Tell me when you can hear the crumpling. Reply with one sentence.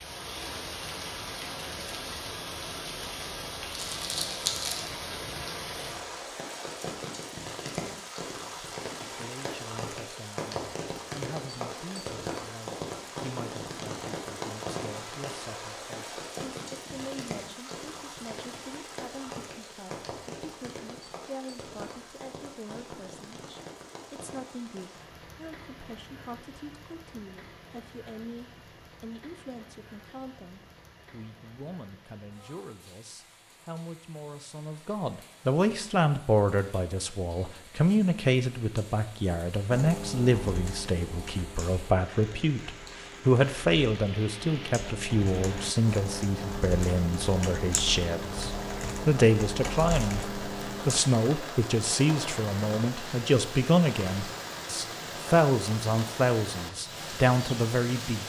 You can hear the crumpling from 3.7 to 4.9 s.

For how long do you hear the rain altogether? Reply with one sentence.
The rain can be heard for 58 seconds in total.